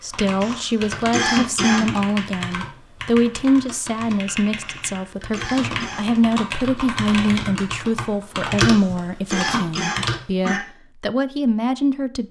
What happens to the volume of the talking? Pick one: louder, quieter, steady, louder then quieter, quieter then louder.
steady.